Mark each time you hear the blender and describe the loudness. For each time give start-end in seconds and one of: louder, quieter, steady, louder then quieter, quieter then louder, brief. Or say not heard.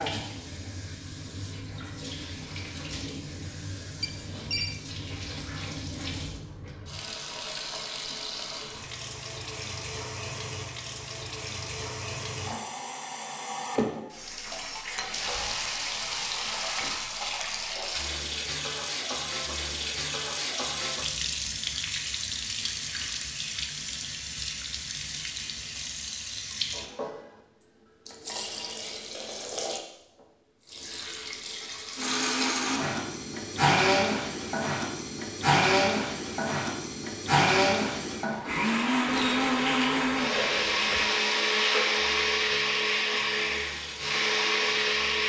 31.9-45.2 steady.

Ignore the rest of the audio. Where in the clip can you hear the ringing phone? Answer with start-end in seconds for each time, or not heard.
4.0-4.8, 39.0-41.1.